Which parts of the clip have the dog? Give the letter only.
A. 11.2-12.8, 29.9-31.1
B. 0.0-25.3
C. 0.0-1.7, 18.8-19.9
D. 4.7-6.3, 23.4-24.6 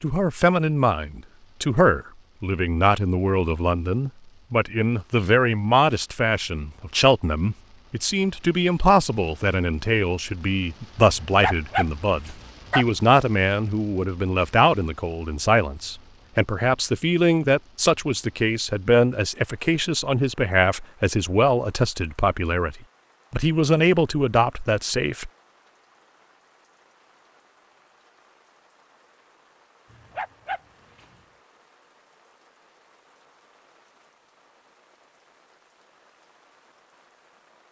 A.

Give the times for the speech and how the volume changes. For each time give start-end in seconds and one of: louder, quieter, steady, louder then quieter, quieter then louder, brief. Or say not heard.
0.0-25.3 steady.